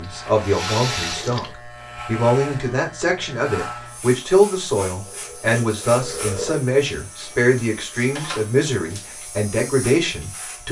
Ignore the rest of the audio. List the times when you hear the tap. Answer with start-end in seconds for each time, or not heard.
0.0-1.6, 5.0-6.6.